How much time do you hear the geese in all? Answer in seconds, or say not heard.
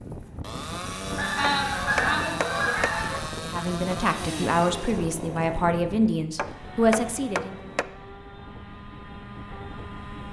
2 s.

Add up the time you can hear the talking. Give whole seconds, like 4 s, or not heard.
4 s.